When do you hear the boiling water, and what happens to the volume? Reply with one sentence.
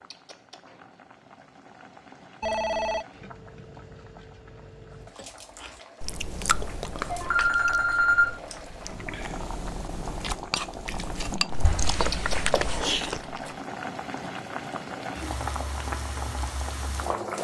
The boiling water can be heard from 0.0 to 17.3 s, getting louder.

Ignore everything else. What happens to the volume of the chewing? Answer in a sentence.
The volume of the chewing goes down, then up.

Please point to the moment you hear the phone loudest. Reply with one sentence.
The volume of the phone peaks at 8 seconds.